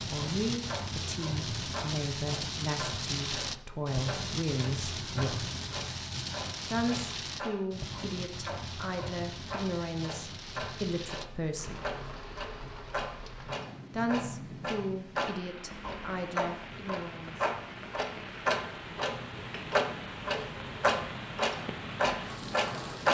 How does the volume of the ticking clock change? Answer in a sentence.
The volume of the ticking clock goes up.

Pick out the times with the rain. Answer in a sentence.
The rain can be heard from 0.0 to 23.1 s.